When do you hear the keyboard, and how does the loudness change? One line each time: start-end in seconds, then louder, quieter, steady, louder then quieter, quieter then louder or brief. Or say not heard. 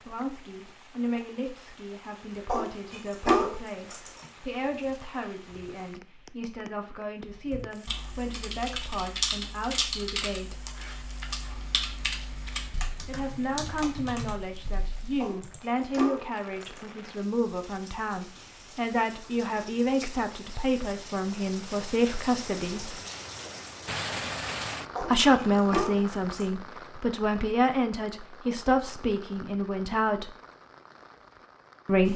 7.2-16.0 quieter.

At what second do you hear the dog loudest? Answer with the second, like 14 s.
3 s.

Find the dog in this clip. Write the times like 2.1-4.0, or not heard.
2.5-4.2, 15.2-16.8, 24.9-26.4.